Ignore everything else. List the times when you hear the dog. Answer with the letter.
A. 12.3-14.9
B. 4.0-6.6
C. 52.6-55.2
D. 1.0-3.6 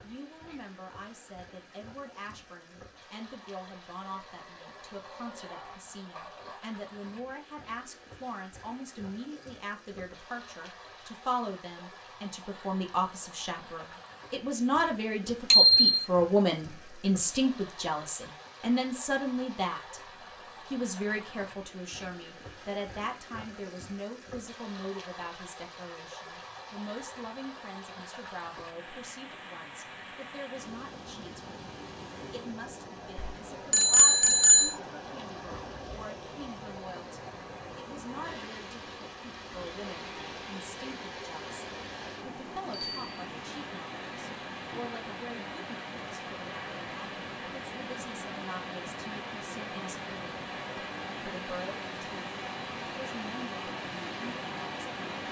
B.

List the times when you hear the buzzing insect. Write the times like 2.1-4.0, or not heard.
not heard.